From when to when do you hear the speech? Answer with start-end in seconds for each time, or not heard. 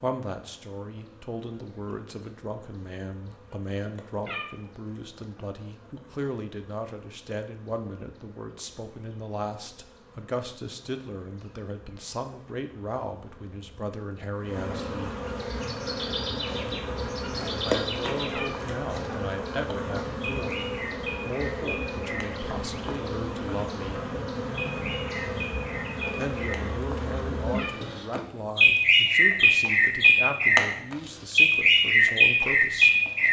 0.0-15.2, 17.6-24.1, 26.1-33.0.